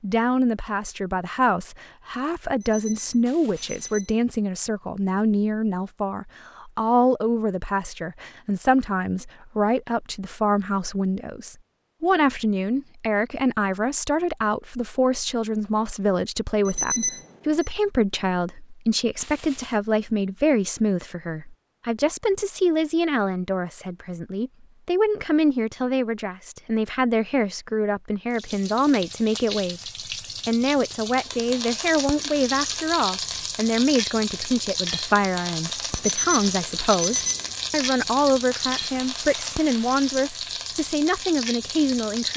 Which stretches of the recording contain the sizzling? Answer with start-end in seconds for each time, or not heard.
28.3-42.3.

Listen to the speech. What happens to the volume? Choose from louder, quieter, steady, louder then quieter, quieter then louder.
steady.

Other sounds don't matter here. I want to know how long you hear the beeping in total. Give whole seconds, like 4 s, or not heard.
4 s.